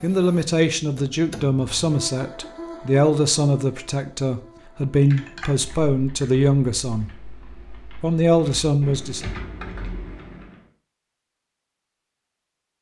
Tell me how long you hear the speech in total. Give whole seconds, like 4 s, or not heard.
8 s.